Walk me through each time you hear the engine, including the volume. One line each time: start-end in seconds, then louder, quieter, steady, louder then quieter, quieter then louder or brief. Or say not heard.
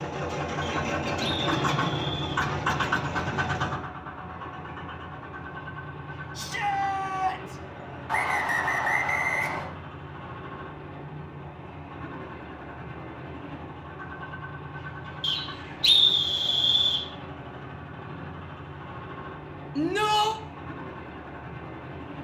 0.0-22.1 quieter.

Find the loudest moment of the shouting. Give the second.
20 s.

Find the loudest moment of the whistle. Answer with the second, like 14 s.
16 s.